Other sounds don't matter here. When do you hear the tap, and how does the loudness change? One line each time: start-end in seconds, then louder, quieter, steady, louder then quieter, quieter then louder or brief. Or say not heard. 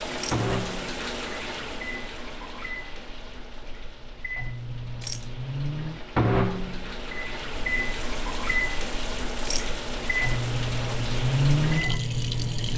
0.0-12.7 quieter then louder.